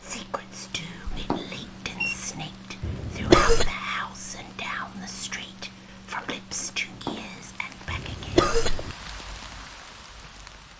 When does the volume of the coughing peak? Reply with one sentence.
The loudest moment of the coughing is at 3 seconds.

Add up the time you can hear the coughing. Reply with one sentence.
You can hear the coughing for 2 seconds altogether.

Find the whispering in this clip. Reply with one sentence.
The whispering can be heard from 0.0 to 8.5 s.